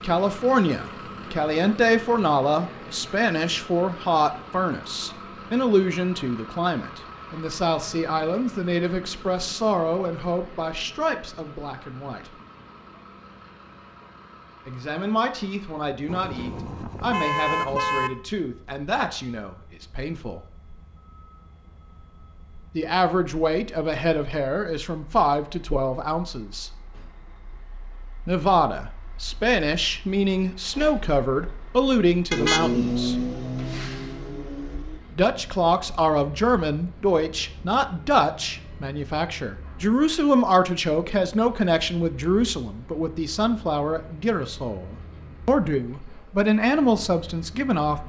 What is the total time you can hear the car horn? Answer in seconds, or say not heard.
5 s.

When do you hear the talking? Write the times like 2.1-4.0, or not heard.
0.0-12.3, 14.7-20.4, 22.8-26.7, 28.2-33.1, 35.1-48.0.